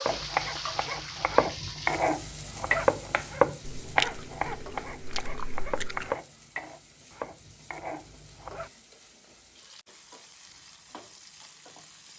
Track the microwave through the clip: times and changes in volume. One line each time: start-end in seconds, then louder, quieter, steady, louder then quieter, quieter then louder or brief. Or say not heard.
not heard.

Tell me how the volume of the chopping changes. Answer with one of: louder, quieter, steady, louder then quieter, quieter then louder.
quieter.